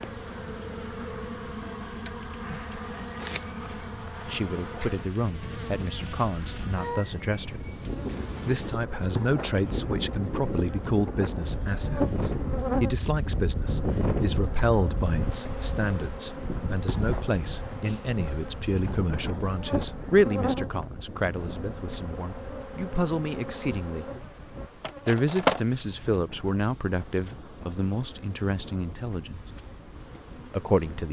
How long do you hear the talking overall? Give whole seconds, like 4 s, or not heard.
24 s.